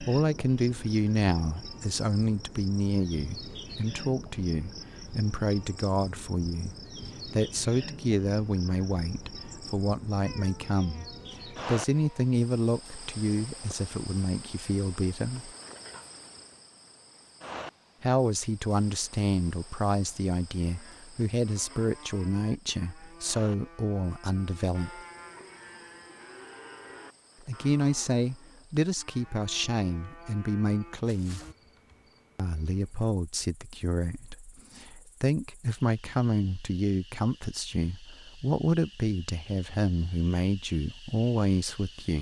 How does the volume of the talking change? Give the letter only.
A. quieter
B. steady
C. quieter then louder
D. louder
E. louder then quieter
B.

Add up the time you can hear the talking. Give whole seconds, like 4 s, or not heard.
36 s.